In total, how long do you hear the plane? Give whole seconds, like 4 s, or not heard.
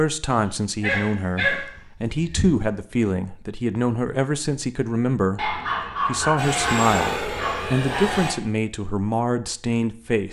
2 s.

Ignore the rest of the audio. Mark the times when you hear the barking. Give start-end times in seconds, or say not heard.
0.3-2.5, 5.3-8.3.